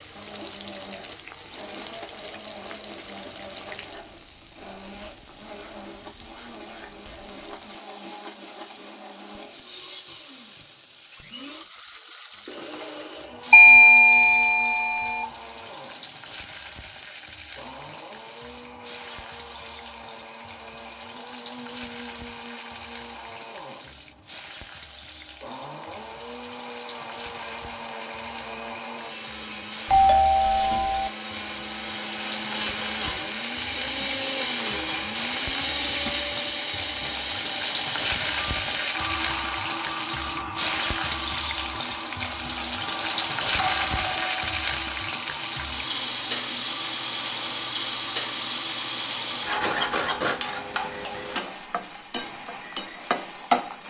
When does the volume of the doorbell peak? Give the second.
14 s.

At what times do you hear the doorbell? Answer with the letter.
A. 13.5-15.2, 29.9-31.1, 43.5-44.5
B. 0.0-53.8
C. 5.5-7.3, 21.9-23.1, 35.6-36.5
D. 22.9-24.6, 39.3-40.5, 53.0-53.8
A.